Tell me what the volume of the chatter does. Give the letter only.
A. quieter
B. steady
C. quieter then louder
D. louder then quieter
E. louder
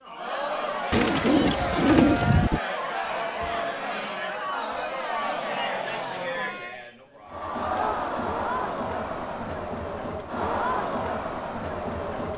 B.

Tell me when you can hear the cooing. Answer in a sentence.
The cooing can be heard from 0.9 to 2.6 s.